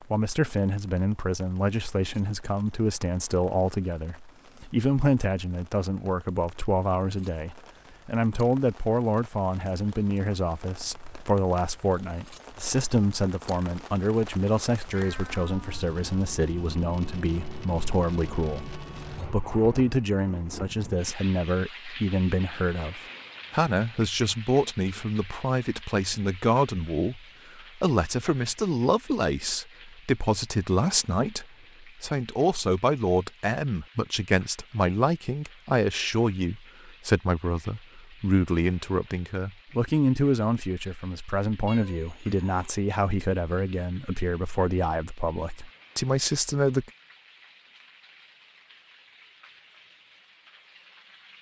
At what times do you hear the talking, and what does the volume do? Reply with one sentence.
The talking can be heard from 0.1 to 46.9 s, at a steady volume.